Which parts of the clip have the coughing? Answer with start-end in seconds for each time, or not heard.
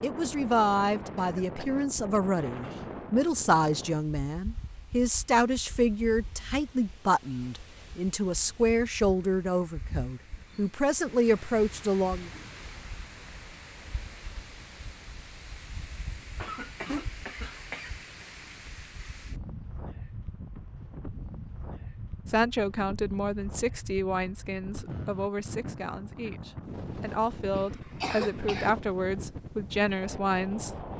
1.1-2.9, 16.4-18.7, 27.5-28.7.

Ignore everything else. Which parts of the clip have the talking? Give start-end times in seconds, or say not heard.
0.0-12.3, 22.2-30.8.